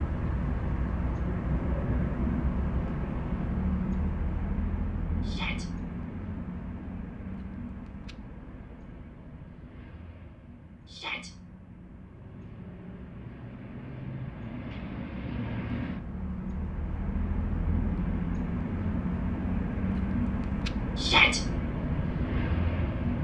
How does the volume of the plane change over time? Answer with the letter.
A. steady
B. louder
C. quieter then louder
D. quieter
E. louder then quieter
C.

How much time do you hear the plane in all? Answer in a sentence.
The plane can be heard for 23 seconds in total.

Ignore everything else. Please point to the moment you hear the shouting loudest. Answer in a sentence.
The loudest moment of the shouting is at 21 seconds.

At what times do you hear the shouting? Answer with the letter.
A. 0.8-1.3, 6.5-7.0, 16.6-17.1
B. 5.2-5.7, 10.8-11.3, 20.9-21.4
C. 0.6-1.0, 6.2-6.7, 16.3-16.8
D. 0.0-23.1
B.